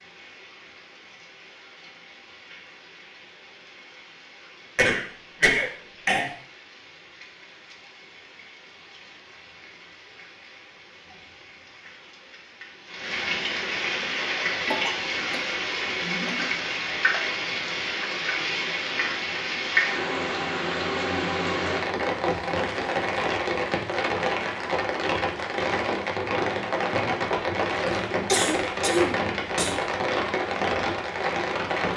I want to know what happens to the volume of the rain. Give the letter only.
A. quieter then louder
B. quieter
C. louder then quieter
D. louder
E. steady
D.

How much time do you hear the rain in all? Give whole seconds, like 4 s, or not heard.
32 s.